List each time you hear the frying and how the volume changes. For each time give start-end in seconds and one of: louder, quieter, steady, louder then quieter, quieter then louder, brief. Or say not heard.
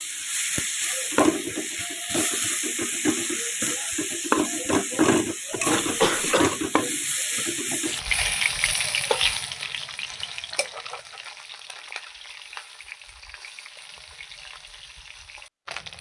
0.0-15.9 quieter.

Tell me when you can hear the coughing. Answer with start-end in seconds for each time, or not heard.
5.5-6.6.